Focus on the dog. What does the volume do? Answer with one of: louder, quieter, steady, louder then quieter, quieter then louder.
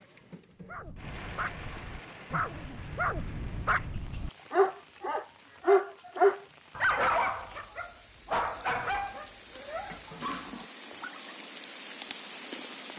louder then quieter.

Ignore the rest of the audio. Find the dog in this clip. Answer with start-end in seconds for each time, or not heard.
0.6-11.3.